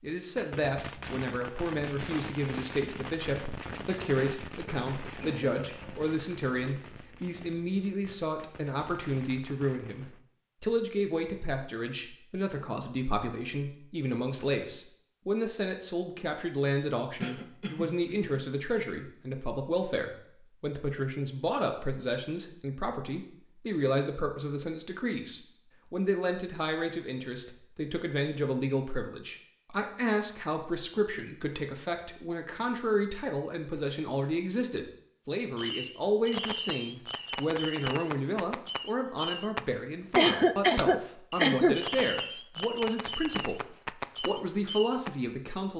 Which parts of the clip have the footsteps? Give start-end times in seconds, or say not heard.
not heard.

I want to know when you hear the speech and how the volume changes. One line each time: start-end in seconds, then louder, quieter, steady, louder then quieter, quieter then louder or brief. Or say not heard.
0.0-45.7 steady.